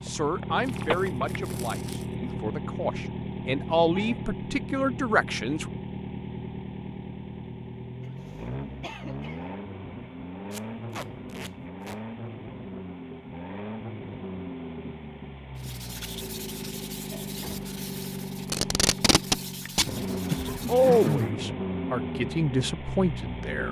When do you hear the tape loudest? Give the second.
19 s.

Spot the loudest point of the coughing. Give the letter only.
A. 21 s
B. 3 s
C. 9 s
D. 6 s
A.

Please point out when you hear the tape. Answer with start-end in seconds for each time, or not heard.
0.6-2.2, 10.5-12.0, 18.4-19.9.